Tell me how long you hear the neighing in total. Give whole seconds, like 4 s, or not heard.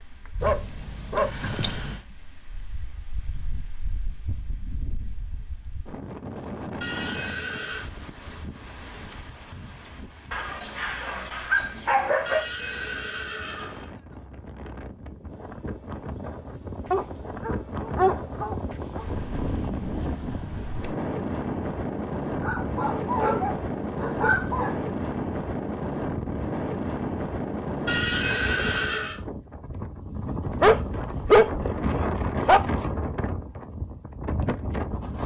4 s.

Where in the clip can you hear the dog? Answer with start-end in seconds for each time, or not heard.
0.4-2.0, 10.3-12.4, 16.9-19.1, 22.4-24.8, 30.6-32.6.